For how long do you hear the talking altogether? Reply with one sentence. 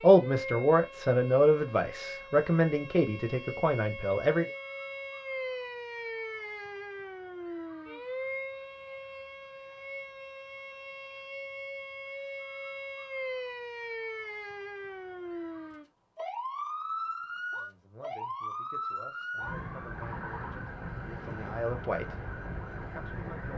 The talking can be heard for 10 seconds in total.